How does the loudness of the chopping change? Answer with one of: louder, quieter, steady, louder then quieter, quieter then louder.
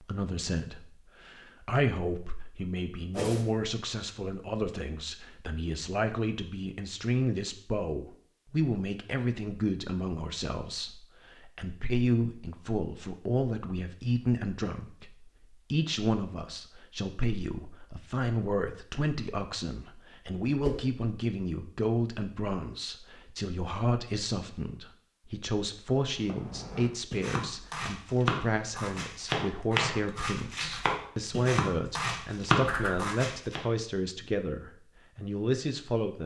louder.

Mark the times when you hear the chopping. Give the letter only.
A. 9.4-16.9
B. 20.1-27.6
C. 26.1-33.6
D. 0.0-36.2
C.